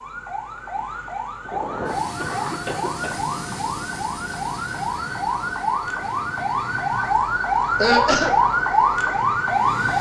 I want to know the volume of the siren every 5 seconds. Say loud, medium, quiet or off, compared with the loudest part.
medium, loud.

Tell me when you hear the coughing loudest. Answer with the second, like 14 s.
8 s.